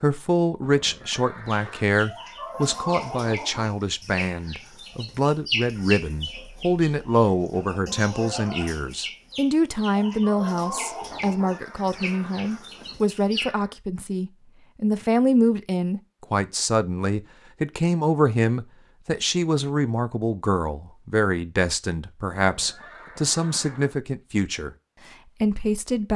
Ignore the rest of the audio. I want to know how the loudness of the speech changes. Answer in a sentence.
The loudness of the speech stays about the same.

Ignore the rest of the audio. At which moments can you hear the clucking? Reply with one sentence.
You can hear the clucking from 1.4 to 13.5 s.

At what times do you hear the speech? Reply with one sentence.
The speech can be heard from 0.0 to 26.1 s.